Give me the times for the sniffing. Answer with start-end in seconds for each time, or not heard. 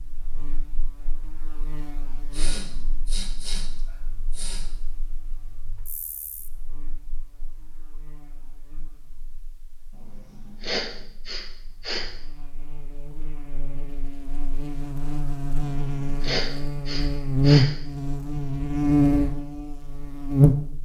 2.3-4.7, 10.0-12.1, 15.7-17.6.